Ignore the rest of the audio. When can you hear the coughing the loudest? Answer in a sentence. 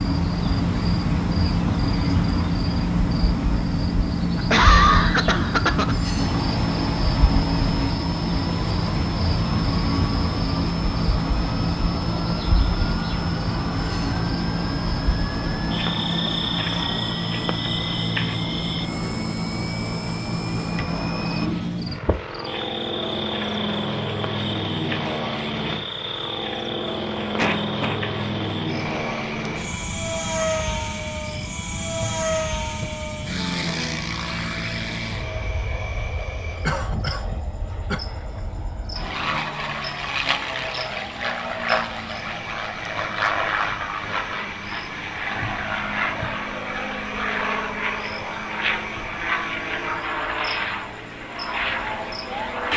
The loudest moment of the coughing is at 5 seconds.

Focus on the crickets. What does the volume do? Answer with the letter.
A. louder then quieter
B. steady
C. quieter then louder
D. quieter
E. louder
D.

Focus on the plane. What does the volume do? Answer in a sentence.
The loudness of the plane stays about the same.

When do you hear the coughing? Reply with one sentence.
The coughing can be heard from 4.3 to 6.0 s, from 27.4 to 28.0 s and from 36.6 to 38.0 s.